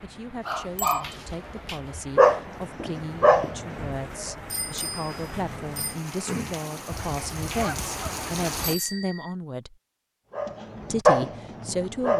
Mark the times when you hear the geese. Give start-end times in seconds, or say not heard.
6.9-8.8.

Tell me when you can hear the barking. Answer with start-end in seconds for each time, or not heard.
0.5-4.0, 10.3-12.1.